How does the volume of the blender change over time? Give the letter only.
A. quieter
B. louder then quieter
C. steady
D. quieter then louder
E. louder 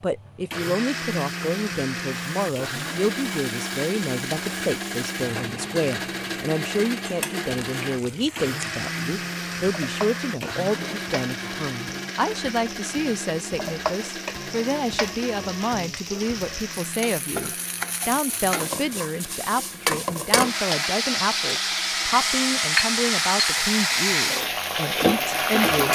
A.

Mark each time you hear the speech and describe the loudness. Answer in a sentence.
You can hear the speech from 0.0 to 25.9 s, at a steady volume.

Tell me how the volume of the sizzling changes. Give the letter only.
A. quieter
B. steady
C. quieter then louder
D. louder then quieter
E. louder
E.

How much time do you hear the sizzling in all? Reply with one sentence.
The sizzling can be heard for 24 seconds in total.